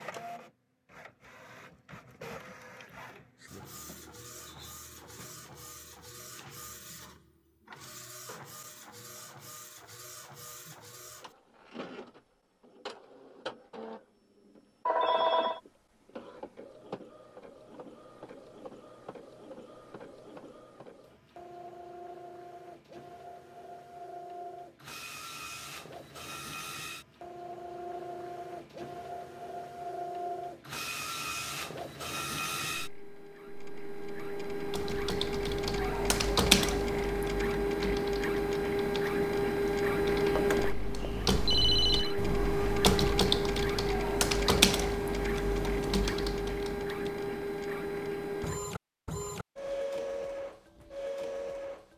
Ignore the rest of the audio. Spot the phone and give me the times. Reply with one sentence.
You can hear the phone from 14.8 to 15.6 s and from 40.3 to 42.1 s.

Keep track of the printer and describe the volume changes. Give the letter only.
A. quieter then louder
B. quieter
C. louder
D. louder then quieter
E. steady
C.